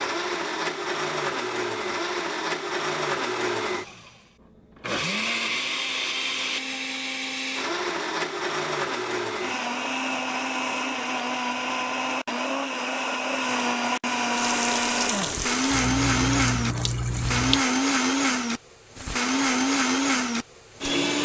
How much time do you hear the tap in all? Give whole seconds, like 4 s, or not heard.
3 s.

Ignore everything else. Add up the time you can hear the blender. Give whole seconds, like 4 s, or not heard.
21 s.